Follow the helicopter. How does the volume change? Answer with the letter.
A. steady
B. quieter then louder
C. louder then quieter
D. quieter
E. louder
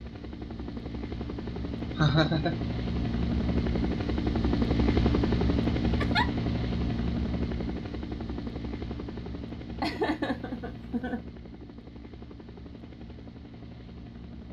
C.